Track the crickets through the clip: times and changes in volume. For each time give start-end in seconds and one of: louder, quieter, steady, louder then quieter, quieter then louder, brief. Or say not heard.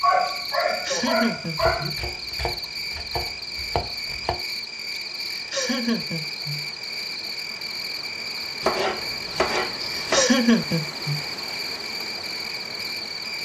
0.0-13.4 steady.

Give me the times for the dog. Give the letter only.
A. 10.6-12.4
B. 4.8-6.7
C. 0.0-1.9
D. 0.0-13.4
C.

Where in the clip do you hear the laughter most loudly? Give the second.
10 s.